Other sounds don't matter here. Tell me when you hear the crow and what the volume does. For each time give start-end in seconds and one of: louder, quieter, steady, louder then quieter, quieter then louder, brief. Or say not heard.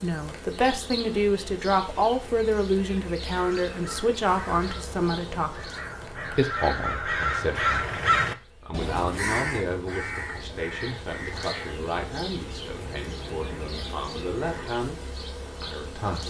3.4-14.8 louder then quieter.